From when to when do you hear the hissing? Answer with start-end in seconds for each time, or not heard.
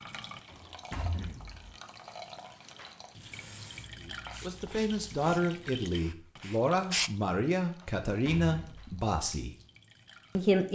3.3-7.1.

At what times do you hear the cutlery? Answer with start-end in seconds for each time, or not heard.
not heard.